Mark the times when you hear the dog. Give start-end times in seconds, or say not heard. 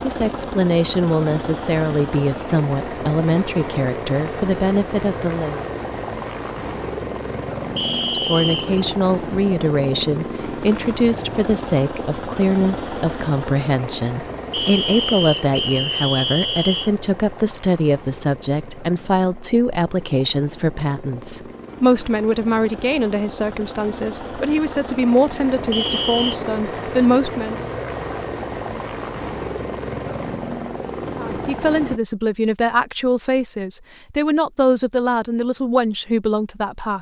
not heard.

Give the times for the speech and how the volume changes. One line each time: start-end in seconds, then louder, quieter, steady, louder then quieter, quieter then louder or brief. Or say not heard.
0.0-5.6 steady
8.1-27.6 steady
31.1-36.9 steady.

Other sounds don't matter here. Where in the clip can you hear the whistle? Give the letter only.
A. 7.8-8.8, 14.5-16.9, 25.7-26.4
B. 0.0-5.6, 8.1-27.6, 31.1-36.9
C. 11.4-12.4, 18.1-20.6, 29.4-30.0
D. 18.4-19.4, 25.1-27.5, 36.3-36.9
A.